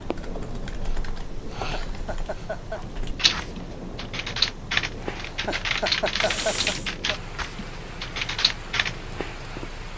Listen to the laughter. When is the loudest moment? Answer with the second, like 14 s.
6 s.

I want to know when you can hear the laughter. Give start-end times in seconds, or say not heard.
1.6-2.8, 5.2-7.2.